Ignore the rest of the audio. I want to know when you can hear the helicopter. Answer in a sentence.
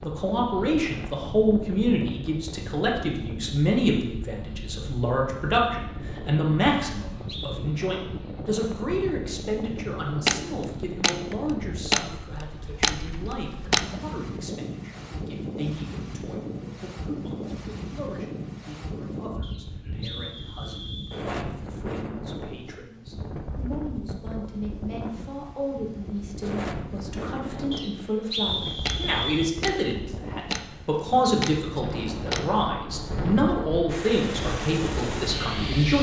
You can hear the helicopter from 33.9 to 35.9 s.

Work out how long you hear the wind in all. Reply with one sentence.
You can hear the wind for 36 seconds altogether.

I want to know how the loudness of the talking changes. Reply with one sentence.
The volume of the talking goes down, then up.